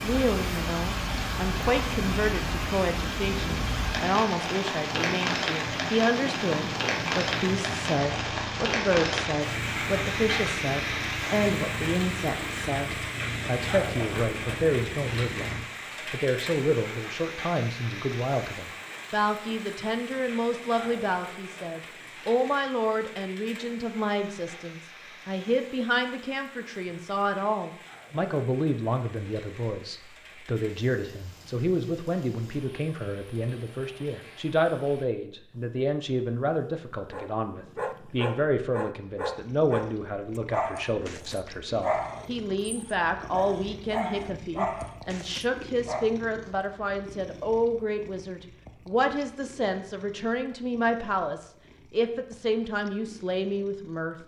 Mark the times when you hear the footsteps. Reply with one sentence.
The footsteps can't be heard in this clip.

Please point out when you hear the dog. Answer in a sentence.
The dog can be heard from 37.1 to 46.1 s.